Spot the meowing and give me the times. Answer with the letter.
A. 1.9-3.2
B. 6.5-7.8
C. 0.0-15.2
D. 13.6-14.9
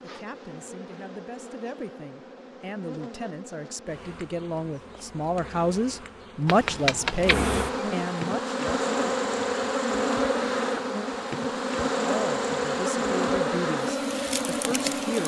B.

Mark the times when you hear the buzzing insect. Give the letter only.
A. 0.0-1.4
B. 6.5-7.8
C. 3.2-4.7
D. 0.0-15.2
D.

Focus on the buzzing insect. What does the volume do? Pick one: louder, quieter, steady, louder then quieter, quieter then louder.
louder.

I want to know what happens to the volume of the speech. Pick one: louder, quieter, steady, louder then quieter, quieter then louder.
louder then quieter.